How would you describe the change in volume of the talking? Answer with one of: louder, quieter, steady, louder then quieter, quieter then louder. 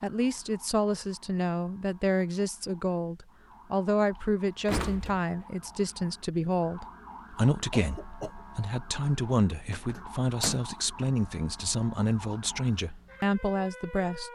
steady.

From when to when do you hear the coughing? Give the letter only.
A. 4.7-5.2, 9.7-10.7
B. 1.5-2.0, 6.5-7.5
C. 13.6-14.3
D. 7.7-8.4
D.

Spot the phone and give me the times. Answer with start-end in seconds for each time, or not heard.
not heard.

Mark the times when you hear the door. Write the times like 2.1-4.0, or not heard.
4.7-5.2, 9.7-10.7.